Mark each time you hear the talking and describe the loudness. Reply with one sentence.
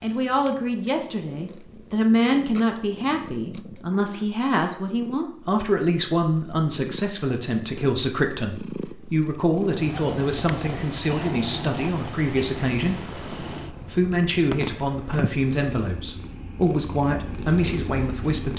You can hear the talking from 0.0 to 18.5 s, at a steady volume.